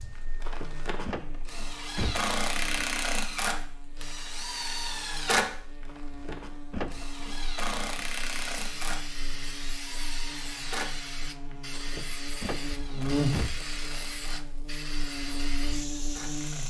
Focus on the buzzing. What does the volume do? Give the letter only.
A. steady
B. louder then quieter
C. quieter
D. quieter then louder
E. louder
E.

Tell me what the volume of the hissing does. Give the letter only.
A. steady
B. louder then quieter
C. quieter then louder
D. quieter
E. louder
A.